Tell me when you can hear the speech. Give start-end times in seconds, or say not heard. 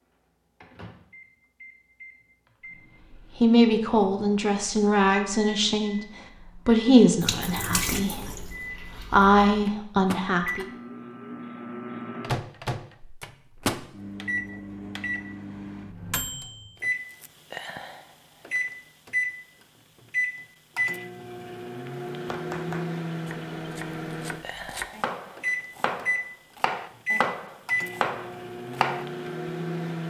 3.4-10.7.